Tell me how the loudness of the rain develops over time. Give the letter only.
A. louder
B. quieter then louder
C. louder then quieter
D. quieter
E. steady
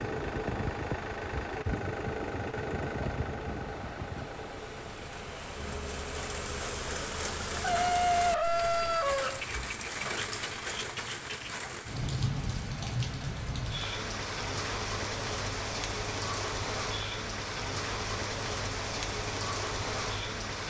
A.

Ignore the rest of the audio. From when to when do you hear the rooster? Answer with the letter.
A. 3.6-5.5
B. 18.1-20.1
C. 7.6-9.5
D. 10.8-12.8
C.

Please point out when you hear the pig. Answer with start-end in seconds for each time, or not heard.
not heard.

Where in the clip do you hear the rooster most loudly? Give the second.
8 s.